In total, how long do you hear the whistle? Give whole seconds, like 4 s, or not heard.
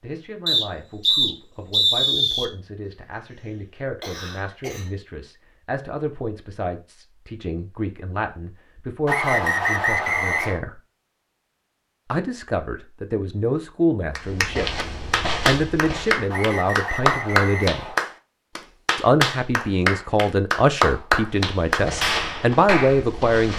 5 s.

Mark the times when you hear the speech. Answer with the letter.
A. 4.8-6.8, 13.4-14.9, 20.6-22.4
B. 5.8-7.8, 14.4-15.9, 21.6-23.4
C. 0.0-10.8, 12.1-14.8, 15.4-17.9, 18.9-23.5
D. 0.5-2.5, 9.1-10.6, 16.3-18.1
C.